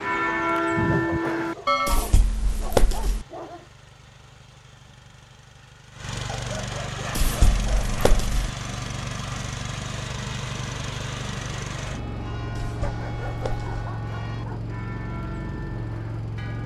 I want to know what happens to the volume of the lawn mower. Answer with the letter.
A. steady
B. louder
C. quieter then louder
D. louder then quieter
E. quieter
B.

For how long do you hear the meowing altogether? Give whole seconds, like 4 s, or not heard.
4 s.